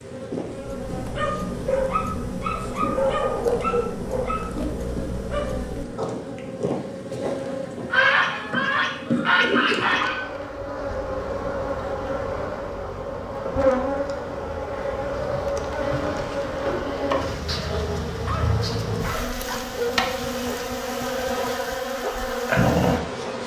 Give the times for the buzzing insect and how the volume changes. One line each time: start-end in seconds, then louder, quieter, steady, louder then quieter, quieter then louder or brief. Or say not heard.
0.0-23.4 louder.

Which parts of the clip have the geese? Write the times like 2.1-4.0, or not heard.
7.9-10.2.